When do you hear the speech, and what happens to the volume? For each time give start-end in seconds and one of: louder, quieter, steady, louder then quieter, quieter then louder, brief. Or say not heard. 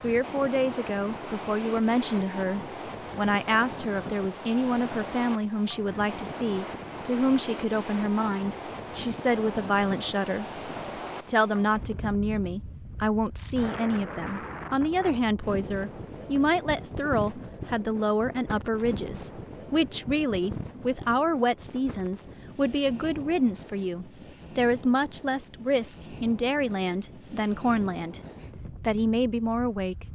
0.0-10.6 steady
11.2-28.2 steady
28.8-30.1 brief.